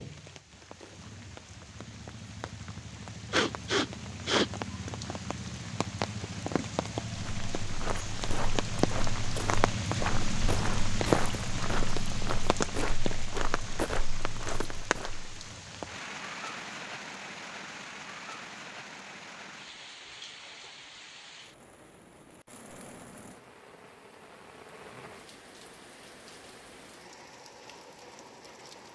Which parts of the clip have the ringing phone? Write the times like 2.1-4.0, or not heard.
not heard.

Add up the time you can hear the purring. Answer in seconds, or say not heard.
not heard.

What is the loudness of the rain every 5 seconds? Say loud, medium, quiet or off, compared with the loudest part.
medium, loud, loud, medium, quiet, quiet.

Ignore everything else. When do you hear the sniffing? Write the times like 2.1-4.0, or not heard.
3.3-4.5.